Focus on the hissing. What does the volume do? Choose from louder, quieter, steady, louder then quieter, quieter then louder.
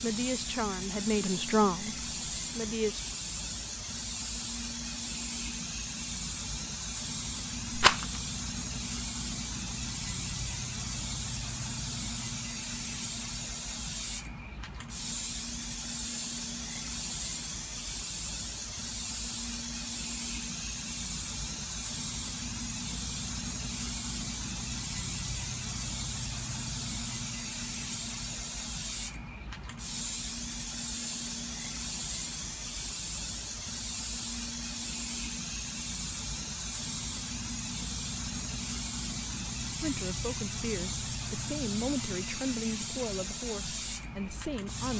steady.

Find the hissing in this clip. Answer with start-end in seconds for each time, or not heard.
0.0-44.9.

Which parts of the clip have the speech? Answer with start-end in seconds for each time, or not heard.
0.0-3.1, 39.7-44.9.